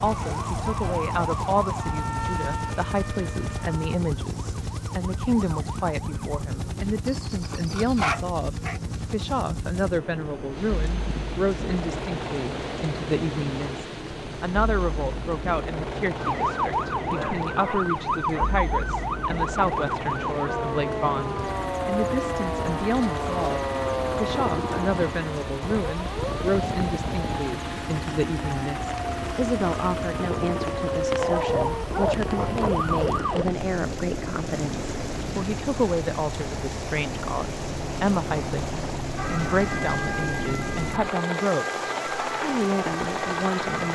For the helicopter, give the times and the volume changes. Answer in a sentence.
The helicopter can be heard from 0.0 to 43.8 s, at a steady volume.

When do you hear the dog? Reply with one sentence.
The dog can be heard from 7.0 to 8.8 s, from 16.7 to 18.4 s and from 31.1 to 32.7 s.